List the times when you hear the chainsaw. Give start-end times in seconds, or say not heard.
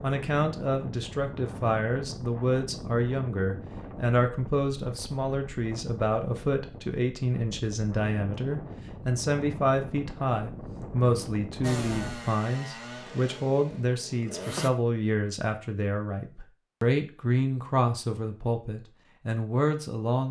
11.6-14.7.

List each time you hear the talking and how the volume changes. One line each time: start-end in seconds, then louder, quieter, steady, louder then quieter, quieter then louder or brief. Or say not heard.
0.0-20.2 steady.